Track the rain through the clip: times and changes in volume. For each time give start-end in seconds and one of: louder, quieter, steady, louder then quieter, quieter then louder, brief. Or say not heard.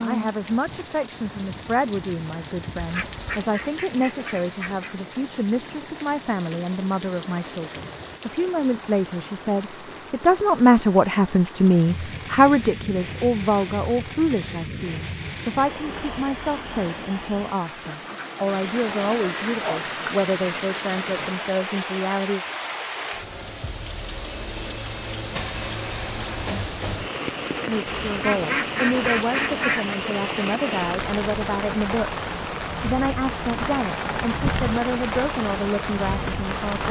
0.0-36.8 louder.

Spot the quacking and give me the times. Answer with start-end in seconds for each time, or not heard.
2.8-5.0, 17.9-19.9, 28.1-29.9.